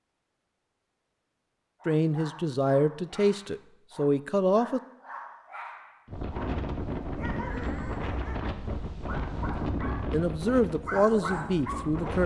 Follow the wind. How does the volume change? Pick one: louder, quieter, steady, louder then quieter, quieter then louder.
quieter.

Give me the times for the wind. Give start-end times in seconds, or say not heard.
6.0-12.2.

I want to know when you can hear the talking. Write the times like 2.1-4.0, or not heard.
1.9-4.8, 10.1-12.2.